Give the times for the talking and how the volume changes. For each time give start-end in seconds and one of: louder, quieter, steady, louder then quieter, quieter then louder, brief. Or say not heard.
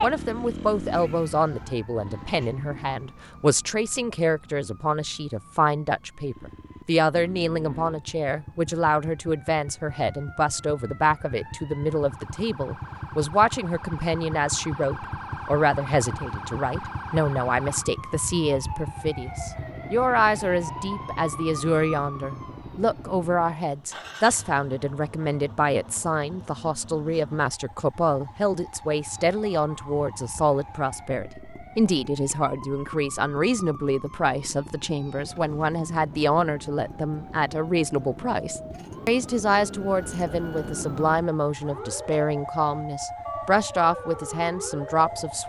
0.0-45.4 steady.